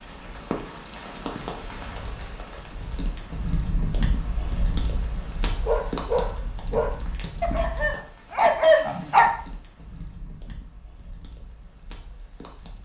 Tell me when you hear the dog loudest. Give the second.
9 s.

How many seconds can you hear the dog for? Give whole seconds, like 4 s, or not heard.
4 s.